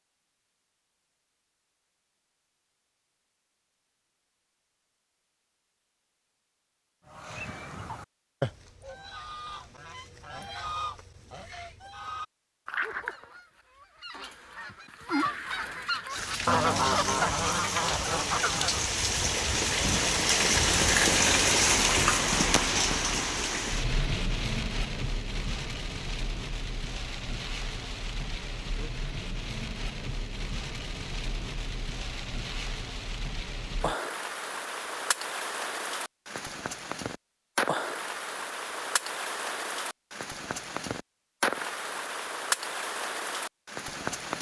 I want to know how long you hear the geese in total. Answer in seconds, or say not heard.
12 s.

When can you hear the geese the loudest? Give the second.
17 s.